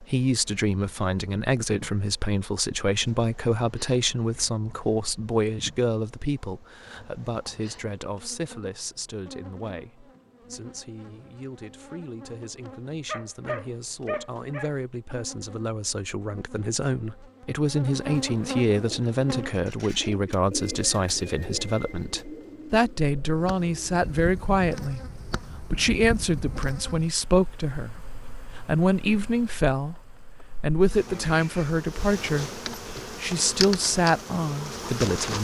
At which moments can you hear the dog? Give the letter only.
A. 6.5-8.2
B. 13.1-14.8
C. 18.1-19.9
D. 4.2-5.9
B.